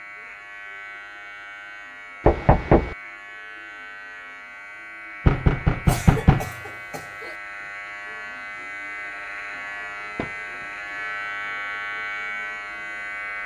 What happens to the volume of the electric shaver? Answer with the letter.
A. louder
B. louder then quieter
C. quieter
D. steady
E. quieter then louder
A.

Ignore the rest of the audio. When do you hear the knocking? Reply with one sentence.
The knocking can be heard from 2.2 to 3.0 s, from 5.2 to 6.5 s and from 10.2 to 10.7 s.